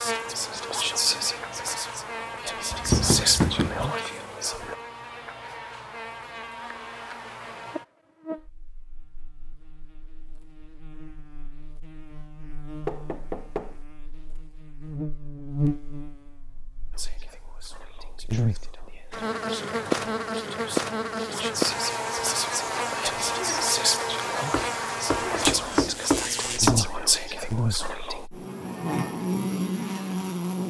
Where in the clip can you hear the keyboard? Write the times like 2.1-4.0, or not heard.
not heard.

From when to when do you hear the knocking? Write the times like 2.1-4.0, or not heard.
2.7-3.9, 12.8-13.8, 24.5-26.9.